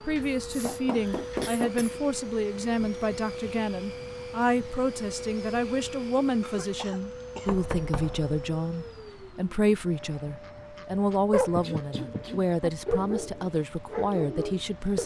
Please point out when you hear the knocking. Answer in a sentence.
The knocking can be heard from 0.2 to 1.8 s, from 7.5 to 8.4 s and from 11.6 to 12.4 s.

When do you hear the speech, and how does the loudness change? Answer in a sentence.
You can hear the speech from 0.1 to 15.0 s, at a steady volume.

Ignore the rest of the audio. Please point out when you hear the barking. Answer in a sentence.
You can hear the barking from 10.4 to 15.0 s.